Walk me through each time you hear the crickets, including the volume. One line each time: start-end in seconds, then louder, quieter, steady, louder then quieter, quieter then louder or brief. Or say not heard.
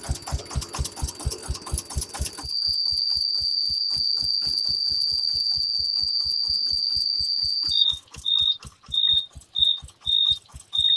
0.2-10.9 louder.